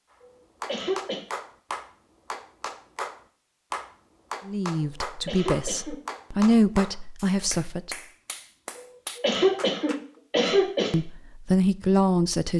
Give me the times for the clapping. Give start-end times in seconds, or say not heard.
0.6-10.0.